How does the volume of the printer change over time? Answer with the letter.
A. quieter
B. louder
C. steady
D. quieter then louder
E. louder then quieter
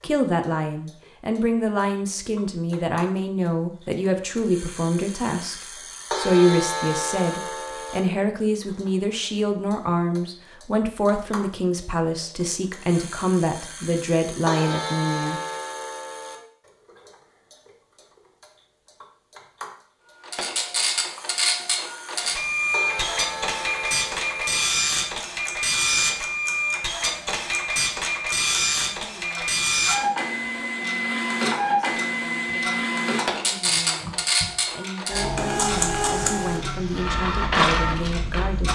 C.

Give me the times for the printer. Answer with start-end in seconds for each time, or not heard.
20.2-38.7.